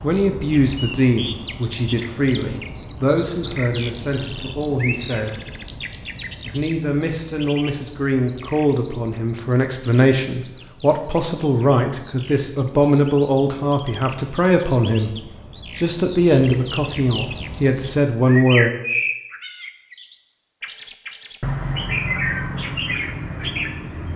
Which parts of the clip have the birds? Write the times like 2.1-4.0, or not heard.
0.0-24.1.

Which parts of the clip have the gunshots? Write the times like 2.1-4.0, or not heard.
not heard.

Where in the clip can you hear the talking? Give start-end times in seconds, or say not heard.
0.0-5.3, 6.5-18.7.